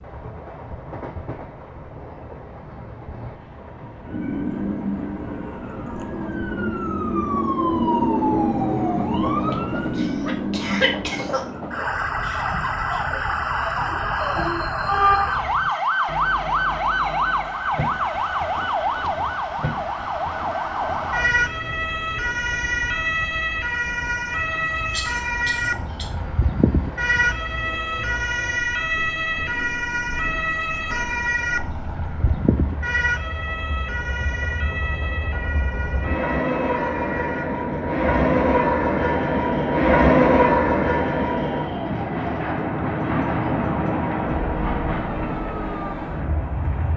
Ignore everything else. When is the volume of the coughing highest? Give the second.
11 s.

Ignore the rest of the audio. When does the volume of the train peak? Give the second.
40 s.